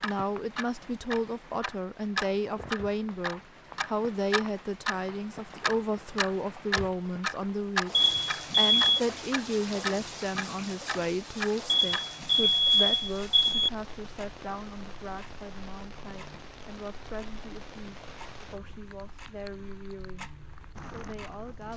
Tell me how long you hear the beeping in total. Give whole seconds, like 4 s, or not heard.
3 s.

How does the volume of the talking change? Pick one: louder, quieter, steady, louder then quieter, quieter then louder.
quieter.